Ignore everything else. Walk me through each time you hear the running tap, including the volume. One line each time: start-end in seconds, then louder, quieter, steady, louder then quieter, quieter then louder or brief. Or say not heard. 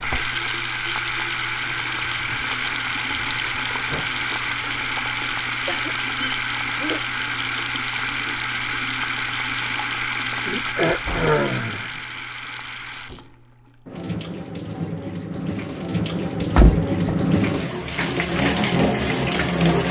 0.0-19.8 quieter then louder.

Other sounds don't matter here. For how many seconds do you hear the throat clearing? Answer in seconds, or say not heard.
3 s.